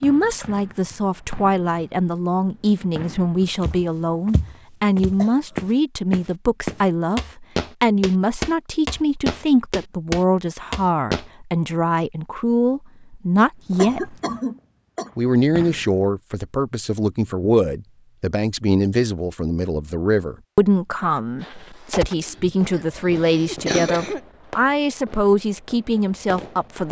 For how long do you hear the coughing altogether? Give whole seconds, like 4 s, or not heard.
4 s.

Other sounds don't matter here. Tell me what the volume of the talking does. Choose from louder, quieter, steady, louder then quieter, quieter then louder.
steady.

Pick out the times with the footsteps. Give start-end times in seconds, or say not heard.
3.6-11.2.